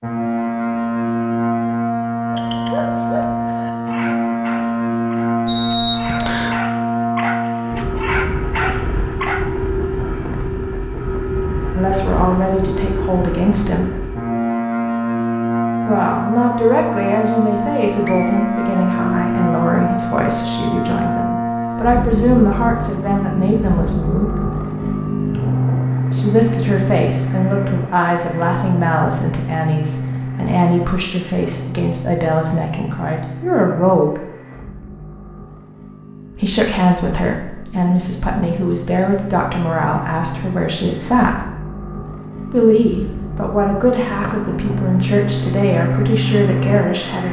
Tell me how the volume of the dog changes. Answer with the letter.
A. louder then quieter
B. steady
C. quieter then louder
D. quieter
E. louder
C.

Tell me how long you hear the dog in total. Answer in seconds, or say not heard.
7 s.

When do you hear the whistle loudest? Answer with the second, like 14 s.
6 s.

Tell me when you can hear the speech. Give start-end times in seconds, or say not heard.
11.8-13.8, 15.8-24.3, 26.1-34.2, 36.4-41.4, 42.5-47.2.